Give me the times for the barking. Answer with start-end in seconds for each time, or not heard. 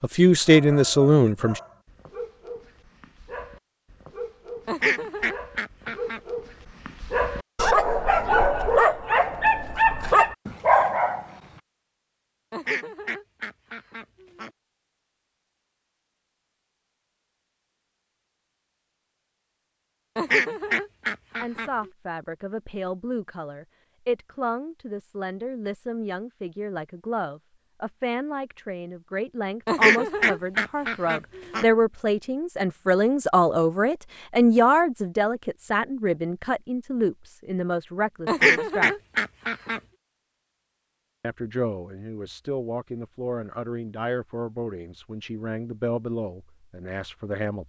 0.5-11.2.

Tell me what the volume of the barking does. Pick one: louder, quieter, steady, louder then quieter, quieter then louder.
louder.